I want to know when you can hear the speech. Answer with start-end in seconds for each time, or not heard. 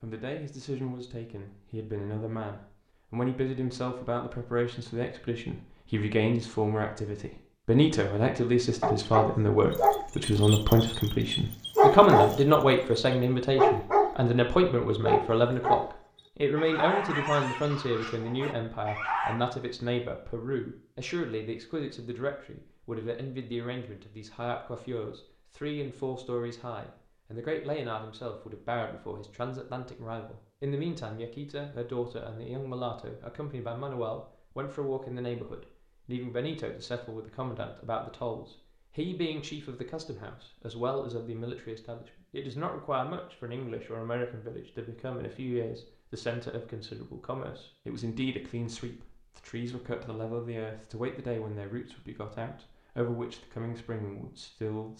0.0-54.9.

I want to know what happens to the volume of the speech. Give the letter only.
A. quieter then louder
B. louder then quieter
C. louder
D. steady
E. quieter
E.